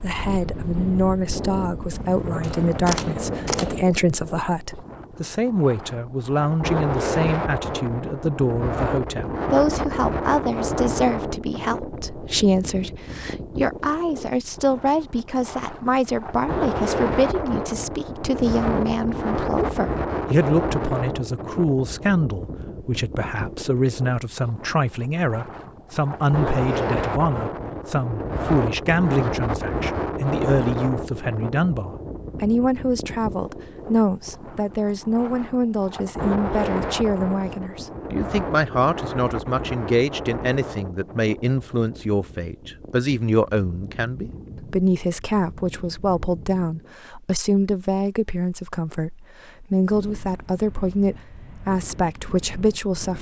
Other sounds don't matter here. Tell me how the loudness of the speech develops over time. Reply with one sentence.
The volume of the speech stays about the same.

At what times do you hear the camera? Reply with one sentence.
The camera can be heard from 2.4 to 3.8 s.